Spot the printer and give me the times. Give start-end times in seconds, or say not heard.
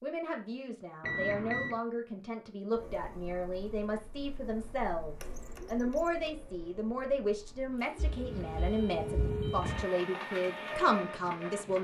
2.8-11.7.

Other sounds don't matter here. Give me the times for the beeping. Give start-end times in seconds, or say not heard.
1.0-1.8, 8.0-9.8.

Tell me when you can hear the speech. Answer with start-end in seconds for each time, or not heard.
0.0-11.7.